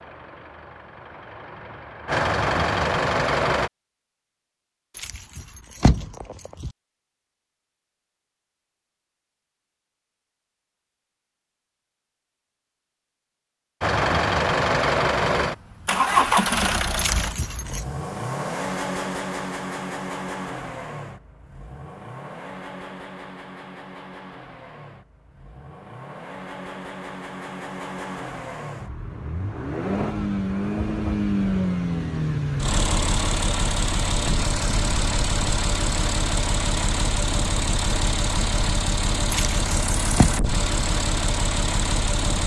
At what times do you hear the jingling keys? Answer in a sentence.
The jingling keys can be heard from 5.0 to 6.7 s, from 16.9 to 17.9 s and from 39.3 to 40.3 s.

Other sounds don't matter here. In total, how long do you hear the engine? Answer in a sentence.
You can hear the engine for 32 seconds altogether.